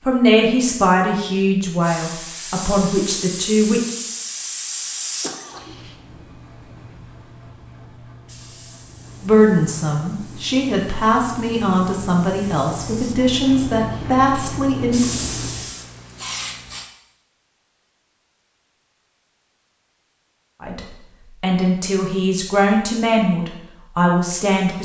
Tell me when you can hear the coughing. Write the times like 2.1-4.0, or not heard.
5.2-5.8.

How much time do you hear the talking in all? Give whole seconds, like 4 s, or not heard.
14 s.